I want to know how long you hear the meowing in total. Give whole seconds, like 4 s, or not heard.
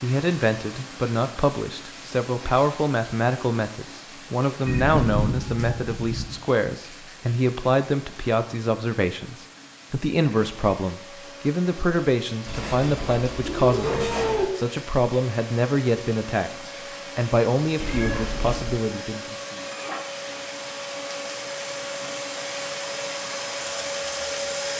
5 s.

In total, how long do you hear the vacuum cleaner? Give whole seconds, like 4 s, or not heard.
14 s.